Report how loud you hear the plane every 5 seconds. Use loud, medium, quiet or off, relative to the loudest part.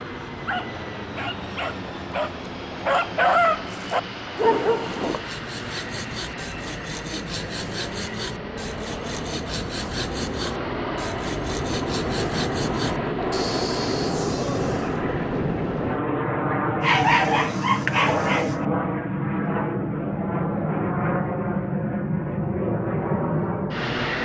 medium, medium, loud, loud, loud.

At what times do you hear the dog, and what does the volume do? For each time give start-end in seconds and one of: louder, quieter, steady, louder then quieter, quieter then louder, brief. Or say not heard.
0.5-5.2 louder
16.8-18.7 brief.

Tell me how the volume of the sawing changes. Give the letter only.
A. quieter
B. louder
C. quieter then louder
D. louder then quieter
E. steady
E.